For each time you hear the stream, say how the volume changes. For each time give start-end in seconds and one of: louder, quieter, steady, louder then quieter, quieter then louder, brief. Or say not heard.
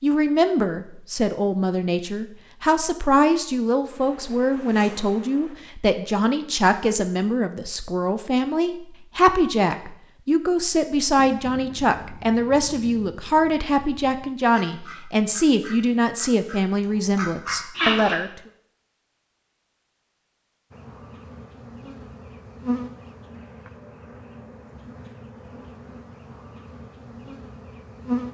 not heard.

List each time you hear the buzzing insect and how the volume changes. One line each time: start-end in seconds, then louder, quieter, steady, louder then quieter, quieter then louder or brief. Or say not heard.
3.9-5.5 brief
20.7-28.3 louder then quieter.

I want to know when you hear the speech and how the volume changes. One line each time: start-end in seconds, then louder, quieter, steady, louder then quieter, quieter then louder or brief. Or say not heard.
0.0-18.3 steady.